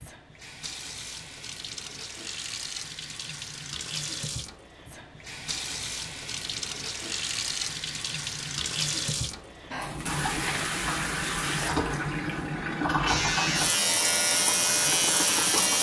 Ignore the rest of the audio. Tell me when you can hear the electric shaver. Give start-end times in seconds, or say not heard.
13.1-15.7.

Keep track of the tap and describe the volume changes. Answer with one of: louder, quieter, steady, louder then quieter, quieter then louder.
louder.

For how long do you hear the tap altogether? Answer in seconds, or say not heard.
16 s.